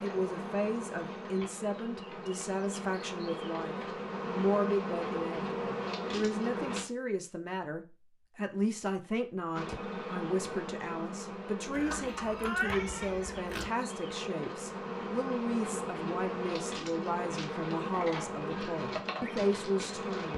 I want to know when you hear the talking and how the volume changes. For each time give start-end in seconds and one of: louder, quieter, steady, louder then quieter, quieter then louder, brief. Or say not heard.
0.0-20.3 steady.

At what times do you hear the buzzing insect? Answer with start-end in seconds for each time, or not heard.
0.0-6.8, 9.5-20.3.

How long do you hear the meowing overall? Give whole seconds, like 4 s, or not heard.
2 s.